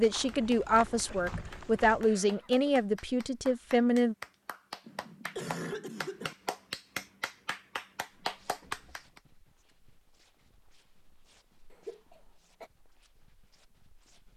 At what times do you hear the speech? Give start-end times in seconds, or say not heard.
0.0-4.2.